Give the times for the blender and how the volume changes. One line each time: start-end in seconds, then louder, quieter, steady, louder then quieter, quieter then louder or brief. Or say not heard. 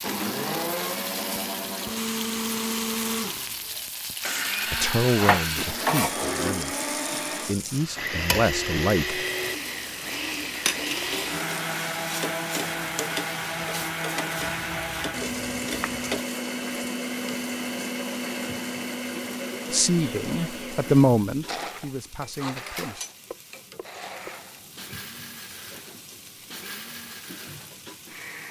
0.0-28.4 quieter.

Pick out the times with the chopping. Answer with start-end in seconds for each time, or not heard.
5.2-6.3, 14.6-16.2, 22.8-24.4.